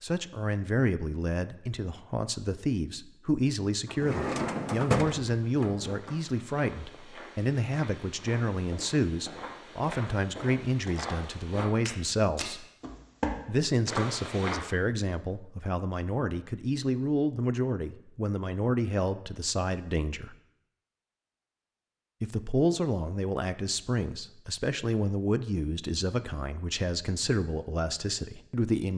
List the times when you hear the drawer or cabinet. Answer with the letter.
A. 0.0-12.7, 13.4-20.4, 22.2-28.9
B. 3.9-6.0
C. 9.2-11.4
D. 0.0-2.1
B.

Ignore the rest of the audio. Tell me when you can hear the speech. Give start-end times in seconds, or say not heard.
0.0-12.7, 13.4-20.4, 22.2-28.9.